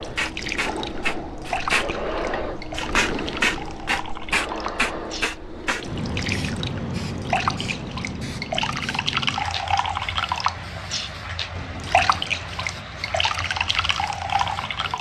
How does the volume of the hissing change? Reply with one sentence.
The volume of the hissing goes down.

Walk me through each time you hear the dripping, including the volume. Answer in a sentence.
The dripping can be heard from 0.0 to 14.9 s, getting louder.